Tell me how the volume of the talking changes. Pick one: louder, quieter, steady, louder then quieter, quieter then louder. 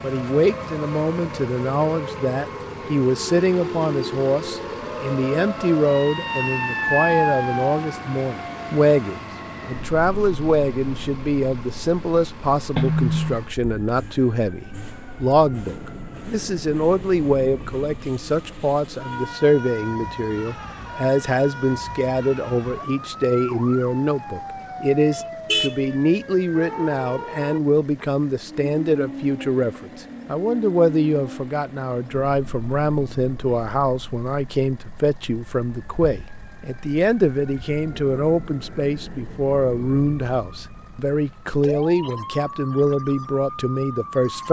steady.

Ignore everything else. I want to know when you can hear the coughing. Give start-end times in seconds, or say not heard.
not heard.